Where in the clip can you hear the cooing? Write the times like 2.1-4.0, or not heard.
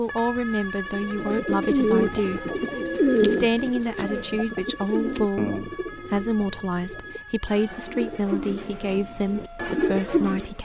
0.9-10.5.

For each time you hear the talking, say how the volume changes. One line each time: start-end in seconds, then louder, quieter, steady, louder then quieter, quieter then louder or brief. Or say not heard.
0.0-10.6 steady.